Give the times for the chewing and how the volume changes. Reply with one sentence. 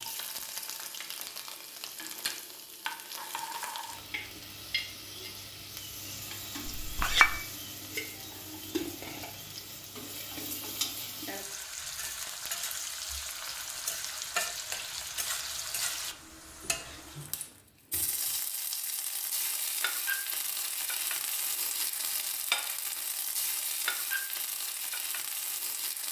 The chewing can't be heard in this clip.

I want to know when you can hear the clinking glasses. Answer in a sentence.
The clinking glasses can be heard from 6.7 to 7.4 s.